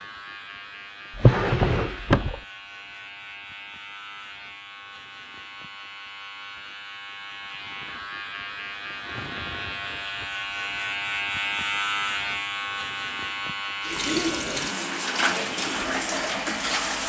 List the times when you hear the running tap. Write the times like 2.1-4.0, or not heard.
13.8-17.0.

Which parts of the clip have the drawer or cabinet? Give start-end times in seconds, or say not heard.
1.1-2.4.